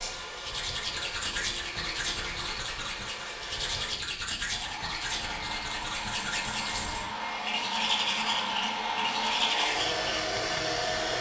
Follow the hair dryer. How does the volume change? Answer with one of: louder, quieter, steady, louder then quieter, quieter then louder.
louder.